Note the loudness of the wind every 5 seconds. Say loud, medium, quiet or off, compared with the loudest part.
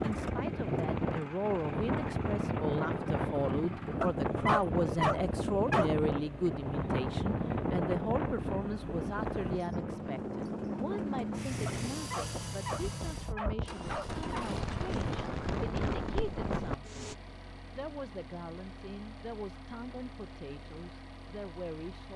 loud, loud, medium, loud, off.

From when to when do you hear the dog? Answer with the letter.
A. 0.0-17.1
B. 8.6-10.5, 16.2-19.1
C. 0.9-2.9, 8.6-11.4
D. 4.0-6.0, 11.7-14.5
D.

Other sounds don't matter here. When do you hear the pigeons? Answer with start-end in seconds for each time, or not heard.
not heard.